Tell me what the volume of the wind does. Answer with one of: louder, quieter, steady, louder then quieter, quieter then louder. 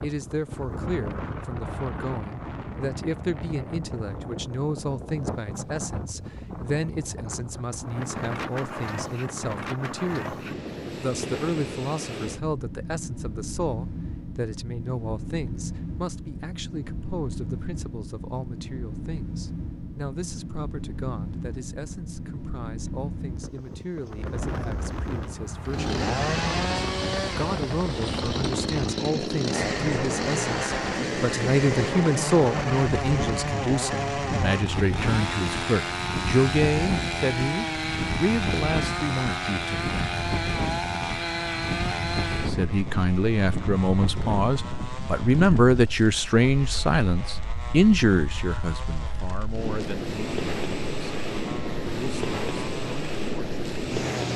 steady.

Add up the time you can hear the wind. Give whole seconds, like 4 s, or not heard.
54 s.